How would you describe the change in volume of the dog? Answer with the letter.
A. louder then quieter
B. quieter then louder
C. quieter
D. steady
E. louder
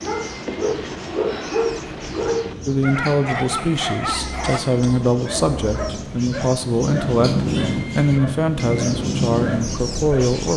C.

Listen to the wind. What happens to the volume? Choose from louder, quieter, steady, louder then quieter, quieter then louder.
louder.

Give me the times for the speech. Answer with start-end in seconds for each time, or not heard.
2.6-10.5.